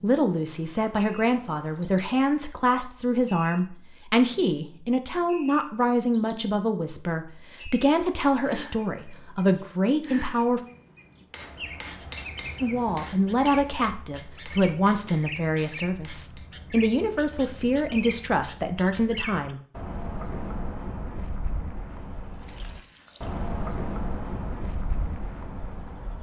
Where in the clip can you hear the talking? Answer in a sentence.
You can hear the talking from 0.0 to 10.6 s and from 12.6 to 19.6 s.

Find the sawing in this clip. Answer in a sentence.
The sawing can't be heard in this clip.